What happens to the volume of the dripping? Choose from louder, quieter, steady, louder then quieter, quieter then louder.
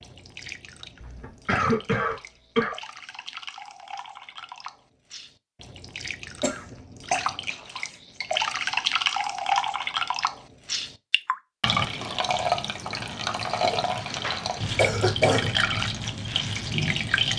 louder.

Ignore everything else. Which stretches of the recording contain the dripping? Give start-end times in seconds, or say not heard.
0.0-17.3.